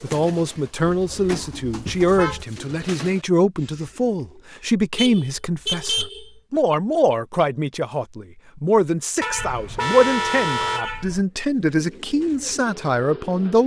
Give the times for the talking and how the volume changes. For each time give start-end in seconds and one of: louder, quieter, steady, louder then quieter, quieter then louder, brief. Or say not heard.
0.0-13.6 steady.